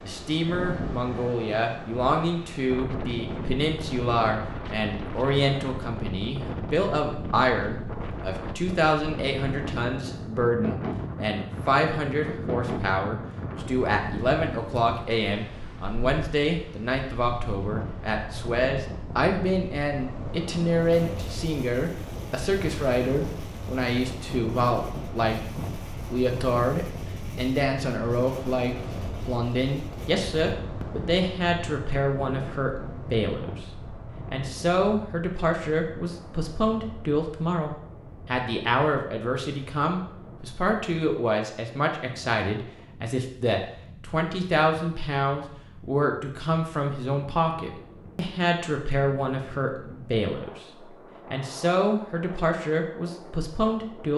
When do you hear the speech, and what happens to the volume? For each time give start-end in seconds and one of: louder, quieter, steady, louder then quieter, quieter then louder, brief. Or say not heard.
0.0-33.6 steady
34.2-50.6 steady
51.2-54.1 brief.